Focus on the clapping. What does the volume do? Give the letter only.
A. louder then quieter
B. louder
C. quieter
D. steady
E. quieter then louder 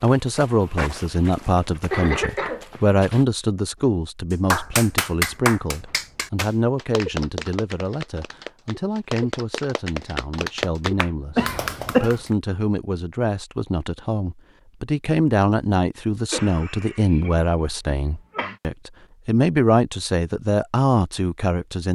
E.